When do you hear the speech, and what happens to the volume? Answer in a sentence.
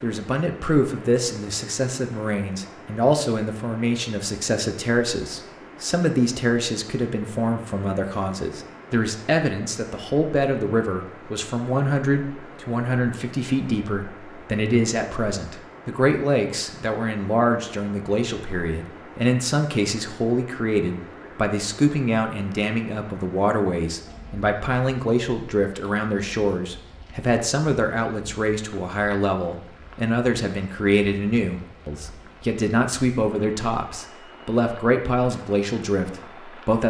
The speech can be heard from 0.0 to 36.8 s, at a steady volume.